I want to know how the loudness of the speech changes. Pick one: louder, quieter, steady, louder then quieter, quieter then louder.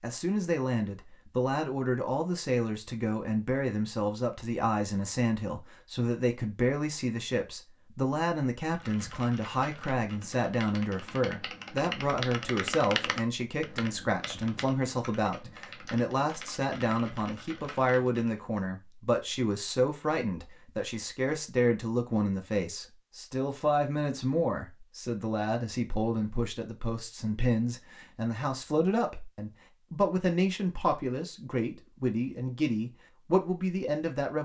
steady.